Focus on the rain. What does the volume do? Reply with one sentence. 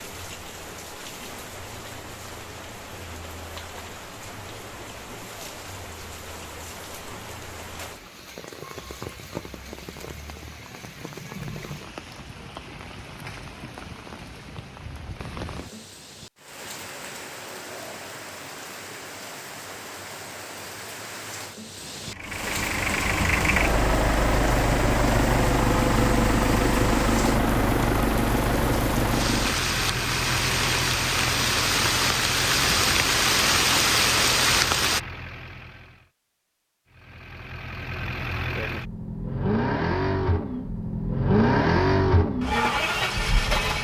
The volume of the rain goes up.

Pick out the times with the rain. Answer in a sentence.
The rain can be heard from 0.0 to 35.0 s.